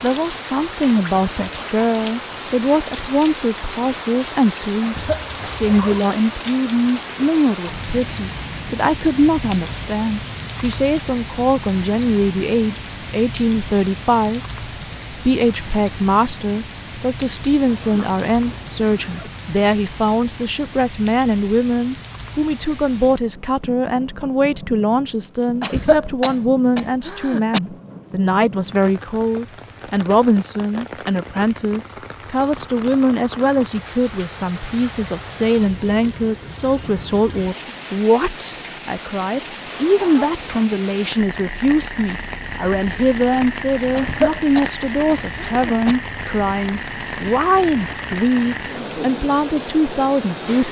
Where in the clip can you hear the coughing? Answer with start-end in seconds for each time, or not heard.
4.8-5.3, 25.6-27.6, 43.9-46.0.